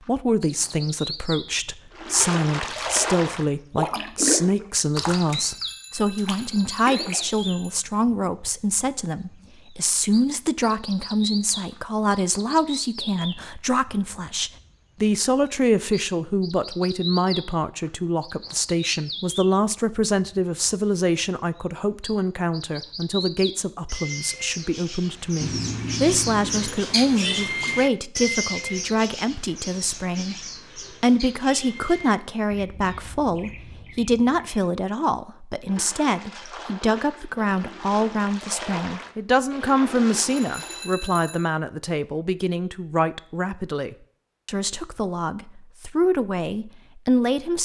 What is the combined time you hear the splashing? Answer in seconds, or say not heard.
11 s.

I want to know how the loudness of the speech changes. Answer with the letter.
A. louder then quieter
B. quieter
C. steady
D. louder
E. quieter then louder
C.